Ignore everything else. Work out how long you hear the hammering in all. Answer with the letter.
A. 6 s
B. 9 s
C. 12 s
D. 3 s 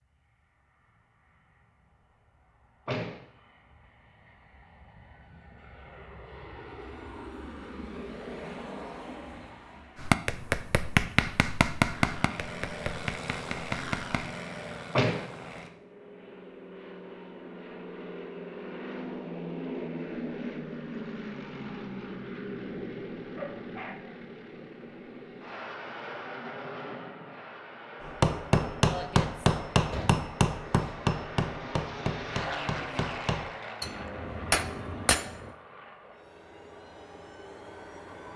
C.